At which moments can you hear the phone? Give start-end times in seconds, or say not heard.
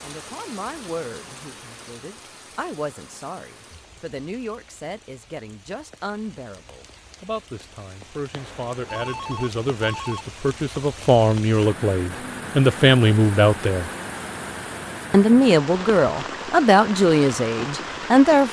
8.3-10.2.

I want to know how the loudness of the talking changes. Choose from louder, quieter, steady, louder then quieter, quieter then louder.
louder.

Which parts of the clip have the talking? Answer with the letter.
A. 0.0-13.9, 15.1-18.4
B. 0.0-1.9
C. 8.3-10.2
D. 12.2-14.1
A.